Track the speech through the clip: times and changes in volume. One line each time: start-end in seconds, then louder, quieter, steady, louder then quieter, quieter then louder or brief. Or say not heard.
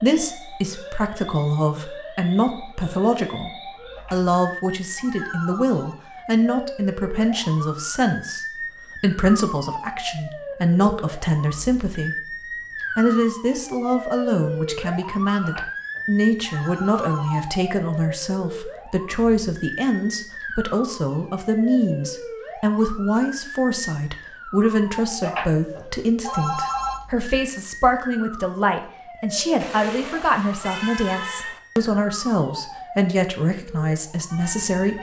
0.0-12.2 steady
12.9-34.9 steady.